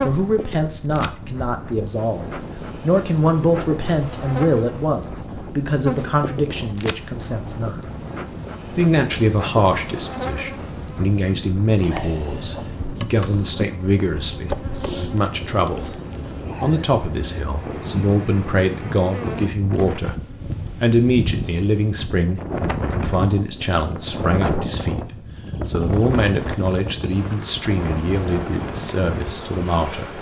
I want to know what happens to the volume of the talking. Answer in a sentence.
The volume of the talking stays about the same.